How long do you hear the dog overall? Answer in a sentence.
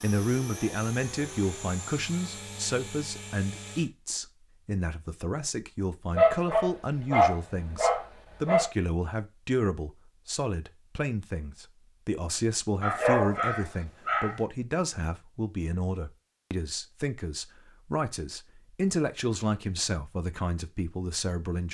The dog can be heard for 4 seconds in total.